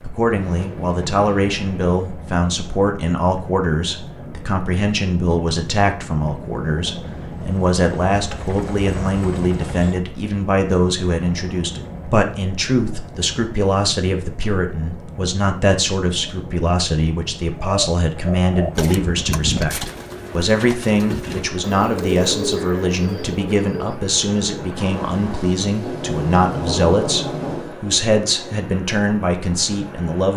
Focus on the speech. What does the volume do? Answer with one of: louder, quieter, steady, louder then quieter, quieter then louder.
steady.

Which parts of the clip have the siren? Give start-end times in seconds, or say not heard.
not heard.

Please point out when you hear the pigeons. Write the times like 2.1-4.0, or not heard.
17.6-24.9.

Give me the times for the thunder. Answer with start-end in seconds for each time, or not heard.
0.3-1.9, 24.8-27.7.